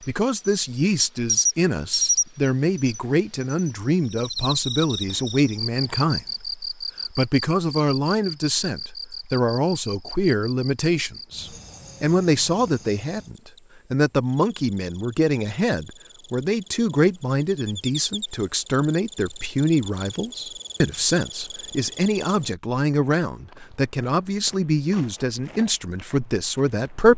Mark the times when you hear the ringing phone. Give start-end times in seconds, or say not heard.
not heard.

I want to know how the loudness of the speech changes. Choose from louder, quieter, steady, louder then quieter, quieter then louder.
steady.